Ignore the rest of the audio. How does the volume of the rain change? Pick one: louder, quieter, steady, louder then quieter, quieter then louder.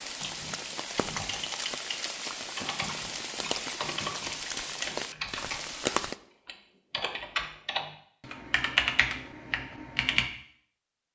steady.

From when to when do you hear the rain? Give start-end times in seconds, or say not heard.
0.0-6.2.